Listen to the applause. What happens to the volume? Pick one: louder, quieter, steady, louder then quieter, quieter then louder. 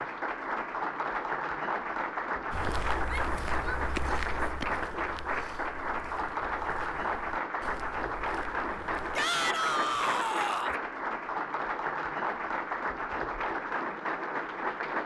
steady.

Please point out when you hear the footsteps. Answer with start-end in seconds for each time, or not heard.
2.5-9.2.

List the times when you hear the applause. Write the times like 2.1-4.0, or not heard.
0.0-15.0.